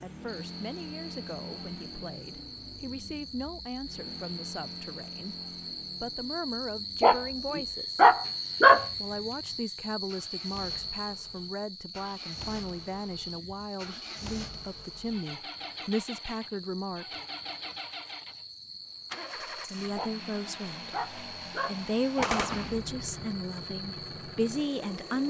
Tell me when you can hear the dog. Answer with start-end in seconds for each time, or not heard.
7.0-8.8, 19.9-22.4.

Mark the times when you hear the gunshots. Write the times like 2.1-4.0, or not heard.
22.2-23.2.